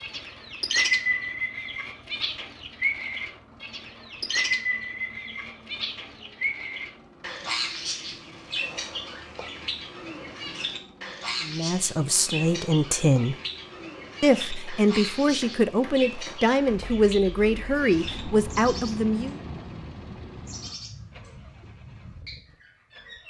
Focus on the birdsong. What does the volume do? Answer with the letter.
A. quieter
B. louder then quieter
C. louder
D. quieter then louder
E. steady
A.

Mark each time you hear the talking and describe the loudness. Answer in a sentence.
The talking can be heard briefly from 11.4 to 13.3 s; and from 14.2 to 19.4 s, at a steady volume.